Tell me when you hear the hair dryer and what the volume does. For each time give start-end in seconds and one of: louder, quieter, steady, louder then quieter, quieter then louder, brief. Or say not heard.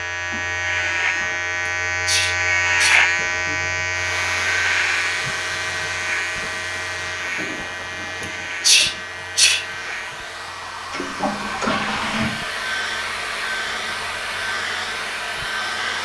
3.9-15.9 quieter then louder.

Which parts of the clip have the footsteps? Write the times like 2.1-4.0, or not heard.
not heard.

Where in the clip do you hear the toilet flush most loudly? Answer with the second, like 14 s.
12 s.